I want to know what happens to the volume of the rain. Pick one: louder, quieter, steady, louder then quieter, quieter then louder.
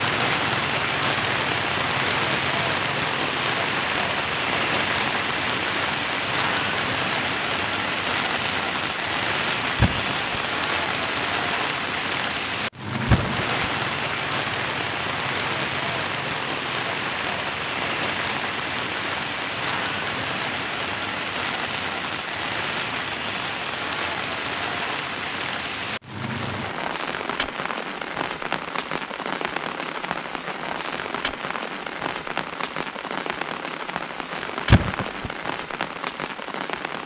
quieter.